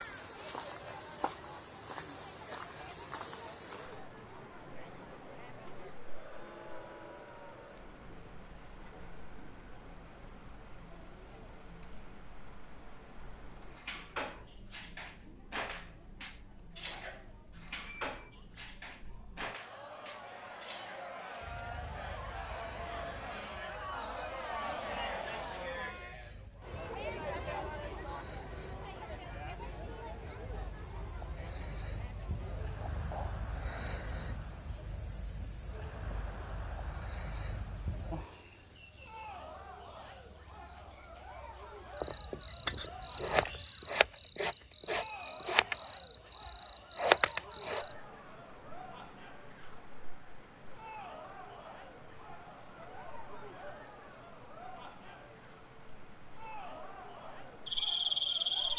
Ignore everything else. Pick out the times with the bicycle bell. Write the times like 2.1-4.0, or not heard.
17.9-18.6.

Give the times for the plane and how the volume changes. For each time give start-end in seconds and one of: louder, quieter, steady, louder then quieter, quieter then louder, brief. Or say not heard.
not heard.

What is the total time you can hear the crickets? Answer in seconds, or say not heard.
59 s.